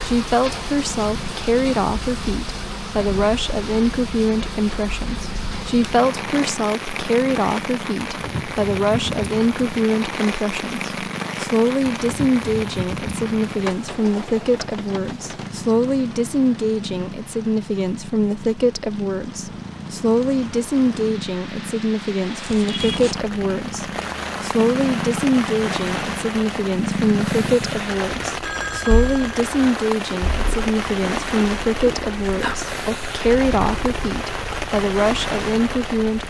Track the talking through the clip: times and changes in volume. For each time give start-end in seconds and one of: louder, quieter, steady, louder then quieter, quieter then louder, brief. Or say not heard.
0.0-36.2 steady.